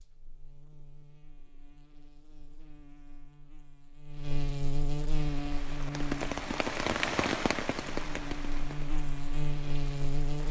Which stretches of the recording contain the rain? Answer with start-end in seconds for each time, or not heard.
5.3-10.4.